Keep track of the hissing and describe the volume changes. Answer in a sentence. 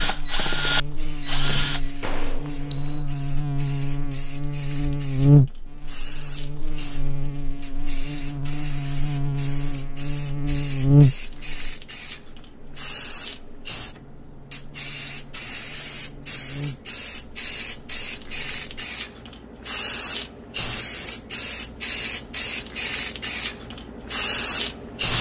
The volume of the hissing goes up.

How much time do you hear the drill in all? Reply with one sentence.
You can hear the drill for 2 seconds altogether.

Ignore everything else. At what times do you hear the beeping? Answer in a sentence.
The beeping can be heard from 2.0 to 3.1 s.